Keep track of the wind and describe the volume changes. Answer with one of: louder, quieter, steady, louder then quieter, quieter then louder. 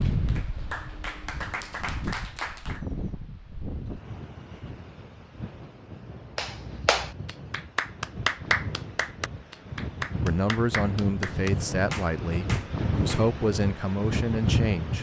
louder.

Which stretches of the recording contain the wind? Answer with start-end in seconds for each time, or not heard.
0.0-14.9.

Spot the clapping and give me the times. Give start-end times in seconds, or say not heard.
0.0-2.9, 6.3-13.2.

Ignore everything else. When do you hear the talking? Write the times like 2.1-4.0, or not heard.
10.2-14.9.